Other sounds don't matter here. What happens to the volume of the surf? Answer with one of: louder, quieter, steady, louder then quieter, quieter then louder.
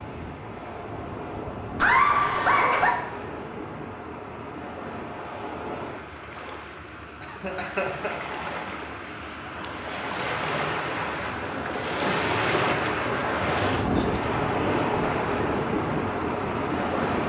louder.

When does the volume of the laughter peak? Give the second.
2 s.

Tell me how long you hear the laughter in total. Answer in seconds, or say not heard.
3 s.